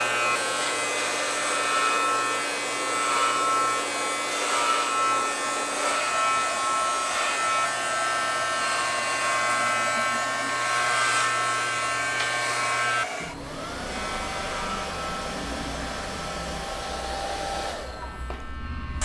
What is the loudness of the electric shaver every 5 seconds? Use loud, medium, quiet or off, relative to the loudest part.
loud, loud, loud, quiet.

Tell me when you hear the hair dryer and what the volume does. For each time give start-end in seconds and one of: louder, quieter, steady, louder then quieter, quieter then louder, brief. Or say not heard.
0.0-19.0 steady.